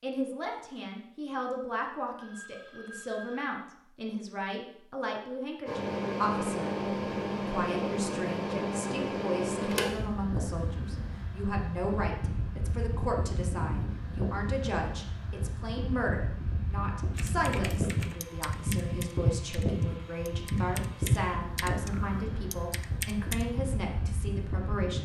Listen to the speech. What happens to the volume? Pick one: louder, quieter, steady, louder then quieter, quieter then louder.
steady.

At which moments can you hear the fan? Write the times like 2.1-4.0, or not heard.
5.7-25.0.